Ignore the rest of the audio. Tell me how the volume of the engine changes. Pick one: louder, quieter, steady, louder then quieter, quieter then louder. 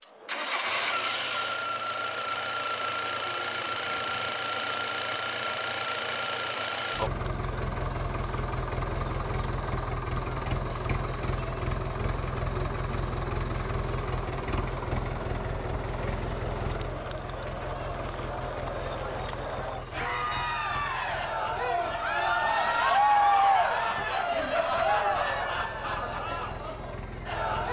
quieter.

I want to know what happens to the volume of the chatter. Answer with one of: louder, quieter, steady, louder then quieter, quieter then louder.
louder.